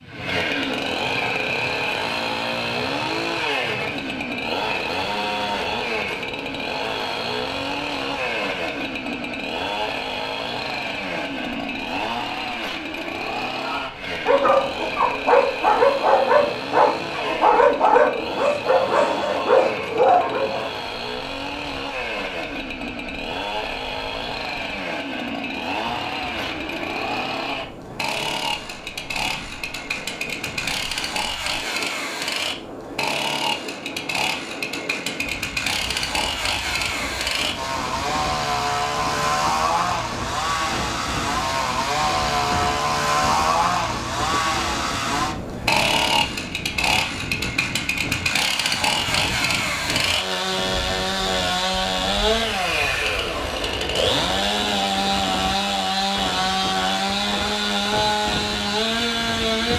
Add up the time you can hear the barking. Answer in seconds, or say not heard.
7 s.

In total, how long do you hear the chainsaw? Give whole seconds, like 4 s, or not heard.
60 s.